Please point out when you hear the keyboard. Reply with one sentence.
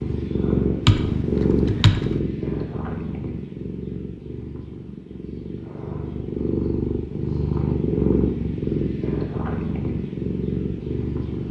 You can hear the keyboard from 0.8 to 2.2 s.